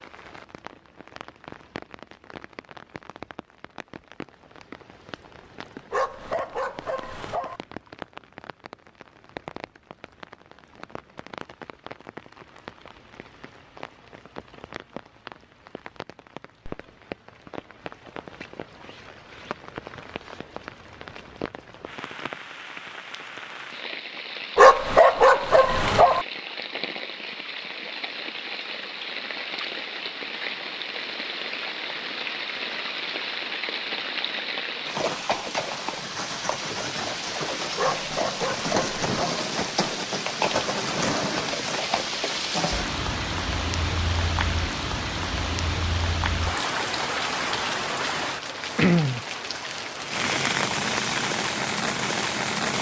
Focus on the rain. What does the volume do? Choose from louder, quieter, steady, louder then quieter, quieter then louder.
louder.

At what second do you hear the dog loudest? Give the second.
25 s.